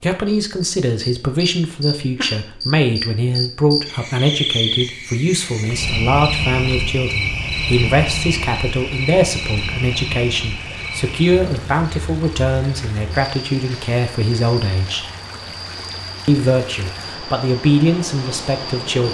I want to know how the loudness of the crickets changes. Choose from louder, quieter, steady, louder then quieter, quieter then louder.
quieter.